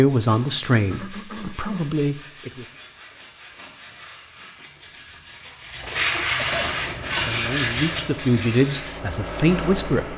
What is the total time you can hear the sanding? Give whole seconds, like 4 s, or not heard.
9 s.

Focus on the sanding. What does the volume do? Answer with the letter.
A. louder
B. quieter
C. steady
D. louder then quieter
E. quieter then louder
A.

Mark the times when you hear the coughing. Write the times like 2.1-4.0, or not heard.
0.9-1.9, 6.2-6.8.